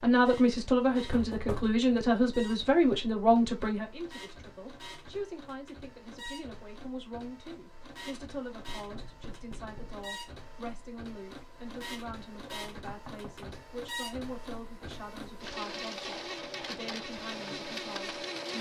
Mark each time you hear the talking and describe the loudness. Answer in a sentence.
The talking can be heard from 0.0 to 18.5 s, getting quieter.